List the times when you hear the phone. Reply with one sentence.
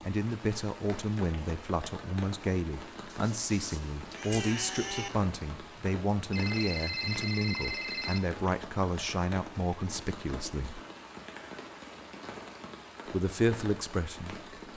You can hear the phone from 6.3 to 8.2 s.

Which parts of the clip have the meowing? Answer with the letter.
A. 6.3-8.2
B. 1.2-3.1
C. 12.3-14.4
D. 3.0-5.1
D.